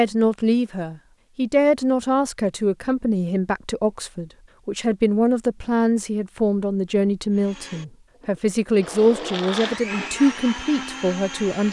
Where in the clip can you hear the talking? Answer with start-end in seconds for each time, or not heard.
0.0-11.6.